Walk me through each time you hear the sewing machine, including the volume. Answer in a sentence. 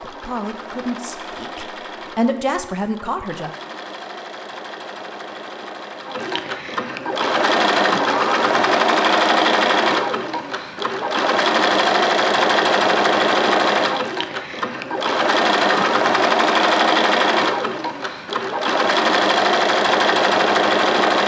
You can hear the sewing machine from 0.0 to 21.2 s, getting louder.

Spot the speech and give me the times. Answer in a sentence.
The speech can be heard from 0.0 to 3.5 s.